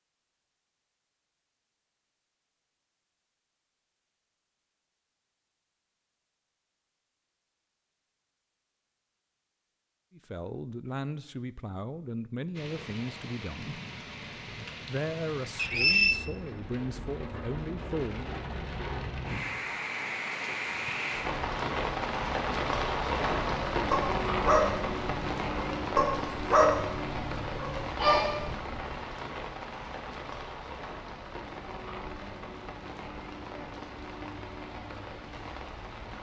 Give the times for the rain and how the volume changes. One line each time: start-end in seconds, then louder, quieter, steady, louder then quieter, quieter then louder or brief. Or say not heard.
12.5-36.1 louder then quieter.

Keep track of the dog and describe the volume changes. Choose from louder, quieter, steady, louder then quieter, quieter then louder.
quieter then louder.